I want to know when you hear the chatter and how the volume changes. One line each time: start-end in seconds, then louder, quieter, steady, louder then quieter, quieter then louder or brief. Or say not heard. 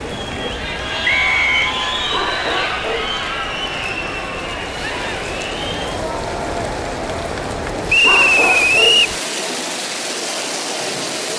0.0-11.3 quieter.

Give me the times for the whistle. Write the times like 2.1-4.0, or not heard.
1.1-1.7, 7.8-9.2.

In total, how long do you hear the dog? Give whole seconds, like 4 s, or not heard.
2 s.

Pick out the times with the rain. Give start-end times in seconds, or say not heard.
0.0-11.3.